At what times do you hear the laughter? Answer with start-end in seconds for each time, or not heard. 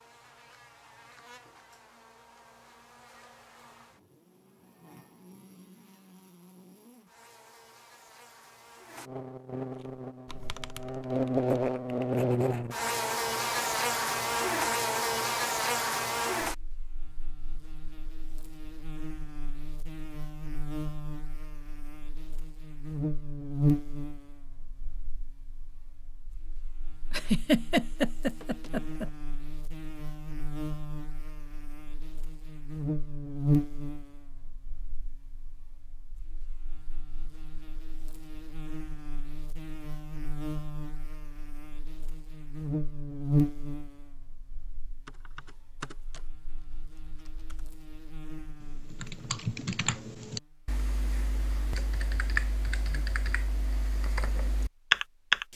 27.1-29.1.